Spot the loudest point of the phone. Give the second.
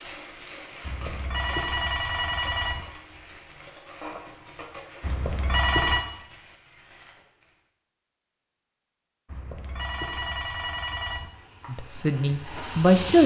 6 s.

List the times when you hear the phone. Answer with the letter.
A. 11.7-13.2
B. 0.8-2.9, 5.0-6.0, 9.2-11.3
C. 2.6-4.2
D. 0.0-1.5
B.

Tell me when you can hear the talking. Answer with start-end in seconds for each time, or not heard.
11.7-13.2.